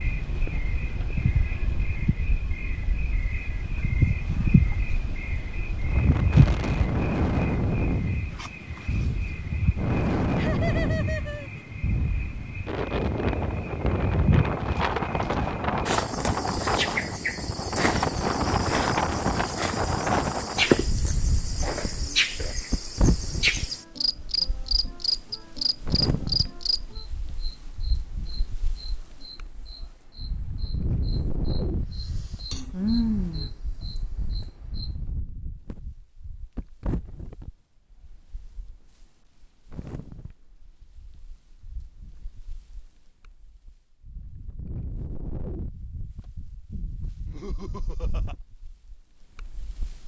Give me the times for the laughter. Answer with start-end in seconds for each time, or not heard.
10.3-11.7, 47.2-48.4.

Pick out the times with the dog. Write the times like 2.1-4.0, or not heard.
not heard.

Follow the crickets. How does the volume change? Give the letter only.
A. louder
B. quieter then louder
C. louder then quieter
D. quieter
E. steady
B.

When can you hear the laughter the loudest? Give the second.
11 s.